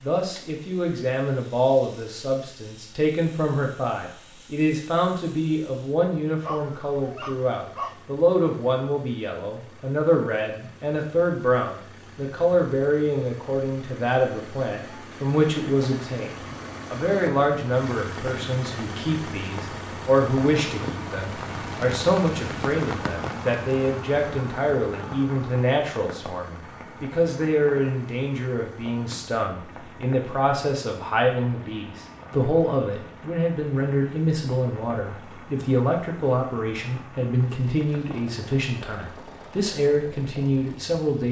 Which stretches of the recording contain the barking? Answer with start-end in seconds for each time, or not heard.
6.4-8.0.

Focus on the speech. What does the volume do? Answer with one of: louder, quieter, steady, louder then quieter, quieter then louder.
steady.